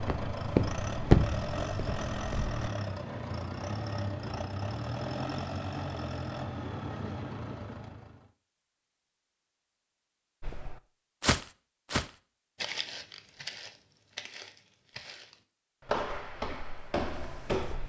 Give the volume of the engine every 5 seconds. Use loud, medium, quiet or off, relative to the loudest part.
loud, loud, off, off.